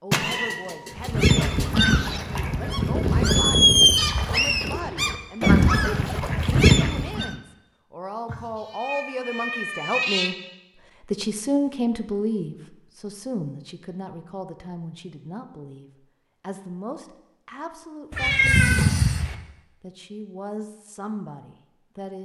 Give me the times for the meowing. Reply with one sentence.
The meowing can be heard from 0.1 to 1.8 s, from 8.2 to 10.3 s and from 18.1 to 19.4 s.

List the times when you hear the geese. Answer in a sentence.
The geese can be heard from 0.9 to 7.3 s.